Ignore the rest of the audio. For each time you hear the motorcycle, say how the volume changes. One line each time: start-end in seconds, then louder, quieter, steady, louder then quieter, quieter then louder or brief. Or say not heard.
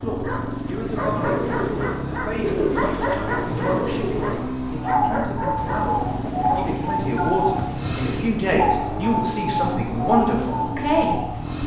0.0-11.6 steady.